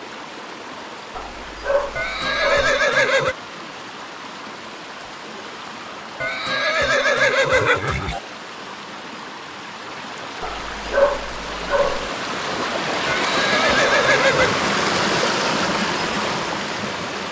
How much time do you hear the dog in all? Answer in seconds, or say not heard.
3 s.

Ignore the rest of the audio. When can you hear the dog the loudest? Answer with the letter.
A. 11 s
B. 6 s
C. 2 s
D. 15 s
A.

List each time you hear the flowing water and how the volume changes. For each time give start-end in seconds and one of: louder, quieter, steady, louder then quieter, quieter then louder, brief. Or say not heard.
0.0-17.2 louder.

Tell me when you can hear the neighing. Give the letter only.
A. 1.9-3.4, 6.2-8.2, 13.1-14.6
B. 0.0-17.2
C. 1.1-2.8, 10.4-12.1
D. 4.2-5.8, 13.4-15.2
A.